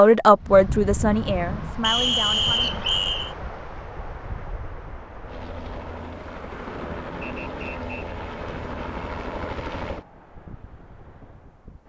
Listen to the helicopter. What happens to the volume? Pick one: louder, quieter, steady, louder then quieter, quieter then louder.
louder.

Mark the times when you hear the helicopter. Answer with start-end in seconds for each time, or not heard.
5.2-10.1.